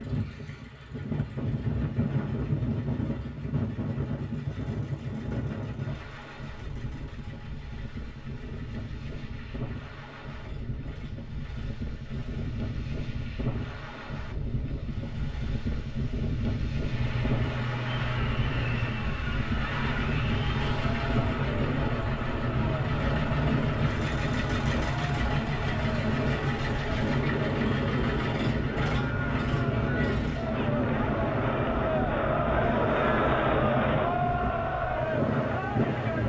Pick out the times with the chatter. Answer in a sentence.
You can hear the chatter from 17.9 to 36.2 s.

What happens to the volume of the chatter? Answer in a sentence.
The loudness of the chatter goes up.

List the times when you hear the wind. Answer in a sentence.
You can hear the wind from 0.0 to 36.2 s.